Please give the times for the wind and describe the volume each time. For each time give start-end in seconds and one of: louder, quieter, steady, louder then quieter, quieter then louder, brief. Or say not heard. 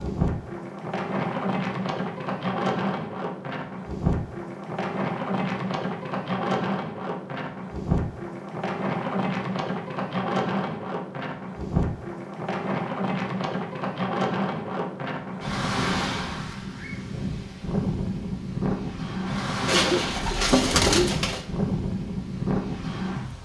0.0-23.4 steady.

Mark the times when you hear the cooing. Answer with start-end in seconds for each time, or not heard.
19.6-21.4.